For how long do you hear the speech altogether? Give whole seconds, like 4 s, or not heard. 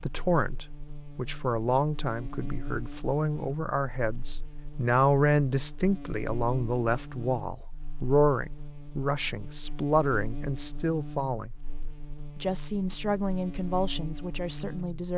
14 s.